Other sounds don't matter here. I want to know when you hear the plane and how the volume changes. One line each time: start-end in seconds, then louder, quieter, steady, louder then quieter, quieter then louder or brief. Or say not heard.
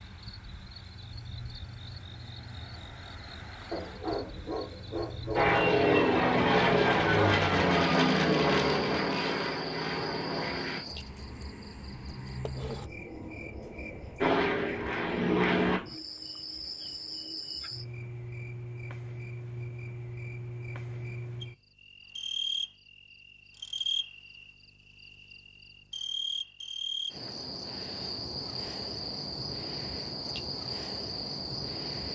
5.3-10.8 quieter
14.2-15.8 brief.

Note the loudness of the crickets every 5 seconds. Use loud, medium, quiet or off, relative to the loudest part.
medium, medium, medium, loud, loud, loud, loud.